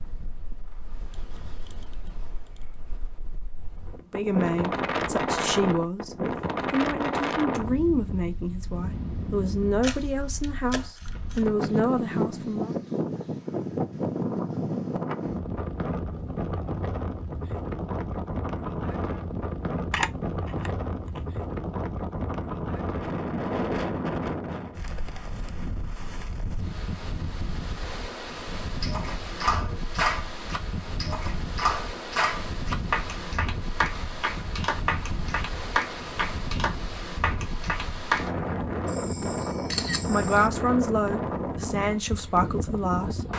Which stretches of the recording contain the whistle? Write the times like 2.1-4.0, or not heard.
not heard.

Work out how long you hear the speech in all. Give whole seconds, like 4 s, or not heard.
12 s.